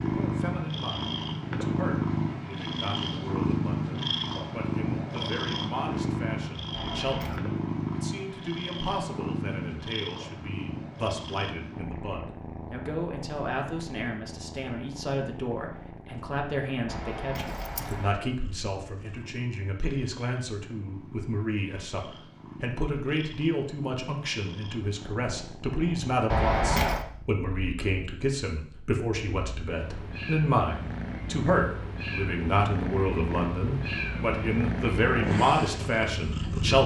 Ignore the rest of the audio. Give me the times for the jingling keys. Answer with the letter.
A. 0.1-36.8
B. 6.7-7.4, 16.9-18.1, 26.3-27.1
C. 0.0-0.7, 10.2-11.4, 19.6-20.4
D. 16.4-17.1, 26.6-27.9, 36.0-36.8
B.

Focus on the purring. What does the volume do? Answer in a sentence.
The loudness of the purring goes down, then up.